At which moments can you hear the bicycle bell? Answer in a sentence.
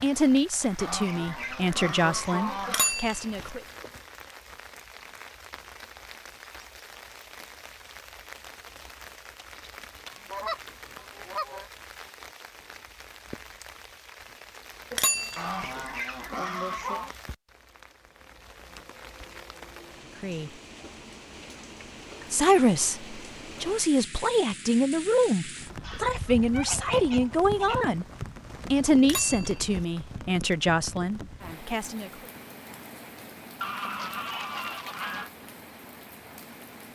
The bicycle bell can be heard from 2.6 to 3.5 s, from 14.9 to 15.8 s and from 29.0 to 29.9 s.